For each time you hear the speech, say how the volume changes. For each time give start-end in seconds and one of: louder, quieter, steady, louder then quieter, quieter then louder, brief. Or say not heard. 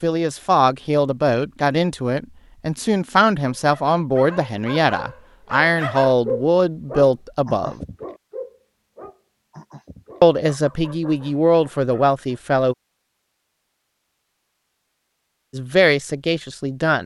0.0-7.8 steady
10.2-12.8 brief
15.5-17.0 brief.